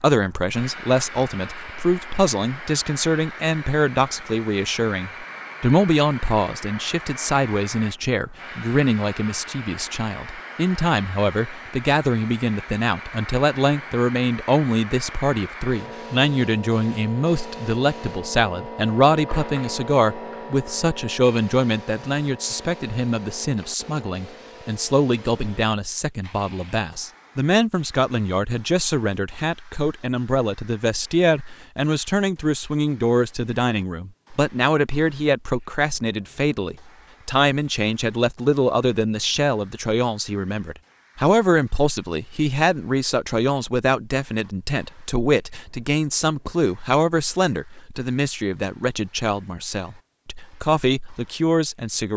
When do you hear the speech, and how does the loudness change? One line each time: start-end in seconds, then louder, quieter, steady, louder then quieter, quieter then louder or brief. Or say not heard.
0.0-52.1 steady.